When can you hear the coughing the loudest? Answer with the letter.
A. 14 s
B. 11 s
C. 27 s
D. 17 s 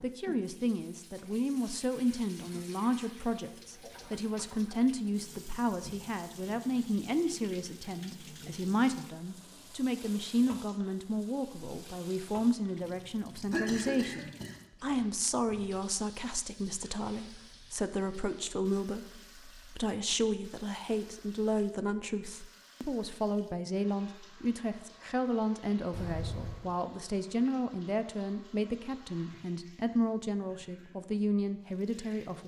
A.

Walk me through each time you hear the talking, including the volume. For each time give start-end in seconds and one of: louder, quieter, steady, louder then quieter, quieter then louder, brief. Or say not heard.
0.0-32.4 steady.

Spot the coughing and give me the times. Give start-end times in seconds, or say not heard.
13.5-14.6, 25.9-26.7.